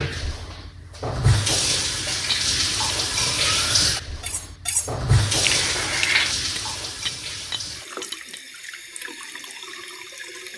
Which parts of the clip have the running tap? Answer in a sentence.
The running tap can be heard from 0.0 to 10.5 s.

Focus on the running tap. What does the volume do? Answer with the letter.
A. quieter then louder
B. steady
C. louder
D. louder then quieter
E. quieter
E.